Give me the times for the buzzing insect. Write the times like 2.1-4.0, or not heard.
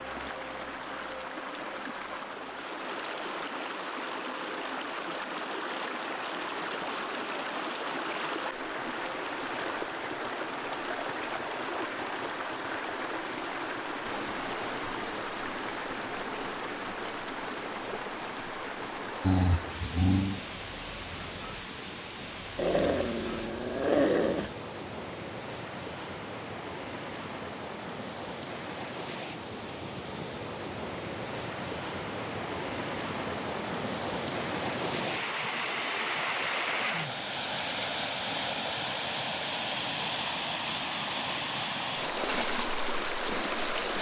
not heard.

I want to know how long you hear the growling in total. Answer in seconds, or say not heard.
3 s.